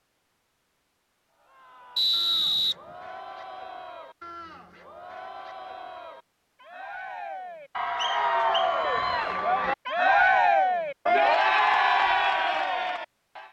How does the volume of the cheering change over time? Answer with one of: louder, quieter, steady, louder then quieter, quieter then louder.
louder.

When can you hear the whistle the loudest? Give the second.
2 s.